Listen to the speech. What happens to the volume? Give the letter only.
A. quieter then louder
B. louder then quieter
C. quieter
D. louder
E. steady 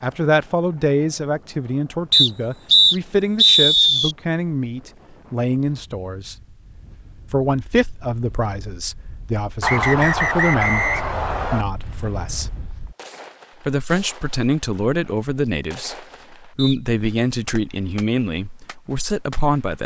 E.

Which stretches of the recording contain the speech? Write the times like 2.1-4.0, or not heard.
0.0-6.3, 7.3-12.5, 13.6-19.8.